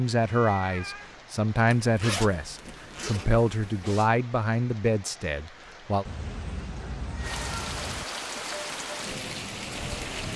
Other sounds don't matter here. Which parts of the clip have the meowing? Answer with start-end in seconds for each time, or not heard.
0.2-1.1, 6.0-8.1.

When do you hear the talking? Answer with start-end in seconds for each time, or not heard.
0.0-6.0.